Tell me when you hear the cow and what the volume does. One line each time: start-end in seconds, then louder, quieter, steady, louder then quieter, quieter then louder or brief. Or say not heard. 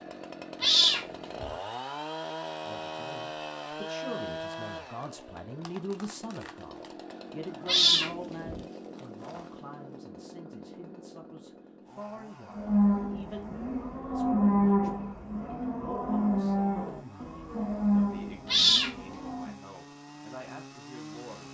12.5-19.6 louder then quieter.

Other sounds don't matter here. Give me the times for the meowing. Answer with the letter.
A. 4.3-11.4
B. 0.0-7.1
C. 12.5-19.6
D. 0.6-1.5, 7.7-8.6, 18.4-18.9
D.